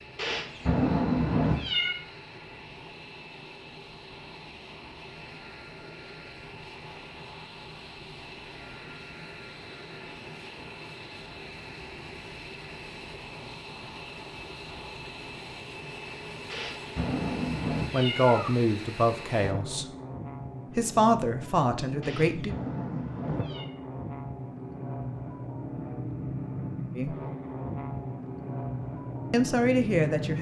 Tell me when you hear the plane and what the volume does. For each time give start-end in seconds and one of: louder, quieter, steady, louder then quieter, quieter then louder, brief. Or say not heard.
0.0-30.3 louder.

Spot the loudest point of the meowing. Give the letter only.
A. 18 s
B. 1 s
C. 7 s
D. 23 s
B.